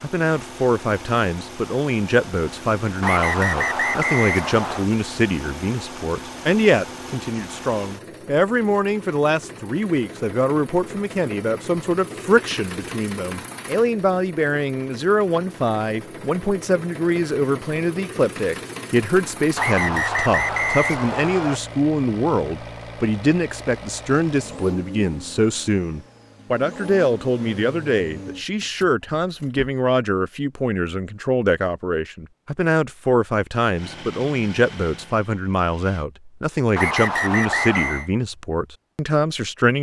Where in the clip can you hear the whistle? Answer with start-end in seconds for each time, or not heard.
3.0-4.8, 19.6-21.6, 36.8-38.1.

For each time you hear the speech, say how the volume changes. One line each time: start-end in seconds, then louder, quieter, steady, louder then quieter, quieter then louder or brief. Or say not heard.
0.0-39.7 steady.